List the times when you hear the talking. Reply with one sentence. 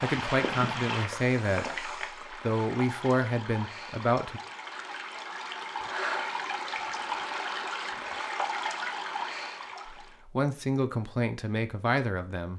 You can hear the talking from 0.0 to 4.4 s and from 9.8 to 12.5 s.